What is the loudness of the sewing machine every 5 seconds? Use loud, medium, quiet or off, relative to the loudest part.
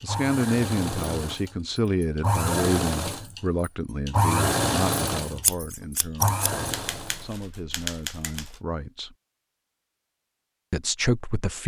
loud, loud, off.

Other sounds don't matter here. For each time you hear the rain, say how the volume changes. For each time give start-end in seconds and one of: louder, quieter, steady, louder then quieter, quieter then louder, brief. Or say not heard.
not heard.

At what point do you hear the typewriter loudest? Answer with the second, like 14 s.
8 s.